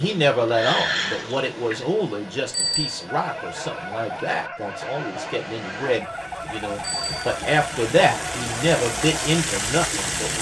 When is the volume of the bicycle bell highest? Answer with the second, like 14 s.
3 s.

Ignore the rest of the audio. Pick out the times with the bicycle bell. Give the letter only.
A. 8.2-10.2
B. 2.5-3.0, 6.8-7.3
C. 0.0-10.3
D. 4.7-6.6
B.